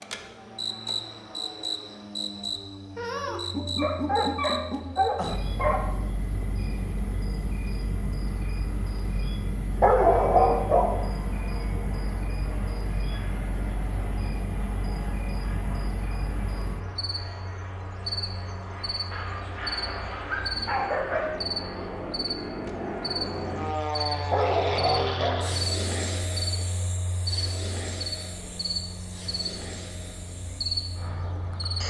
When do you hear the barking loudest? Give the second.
10 s.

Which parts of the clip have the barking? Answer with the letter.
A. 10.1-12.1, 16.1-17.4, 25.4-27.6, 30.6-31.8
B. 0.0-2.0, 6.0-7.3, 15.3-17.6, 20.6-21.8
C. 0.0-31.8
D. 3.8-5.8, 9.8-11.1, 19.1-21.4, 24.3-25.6
D.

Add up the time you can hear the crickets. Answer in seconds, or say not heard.
32 s.